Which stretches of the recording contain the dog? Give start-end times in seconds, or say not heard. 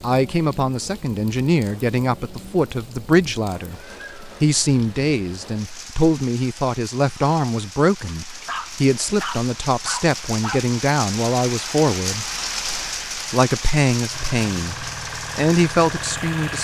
8.1-10.7.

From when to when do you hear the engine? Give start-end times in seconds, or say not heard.
14.1-16.5.